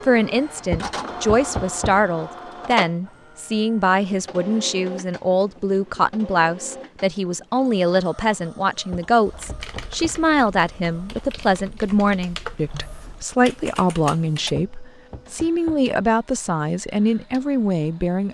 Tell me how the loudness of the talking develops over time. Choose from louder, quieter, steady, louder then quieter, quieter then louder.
steady.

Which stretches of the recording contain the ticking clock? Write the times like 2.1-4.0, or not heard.
not heard.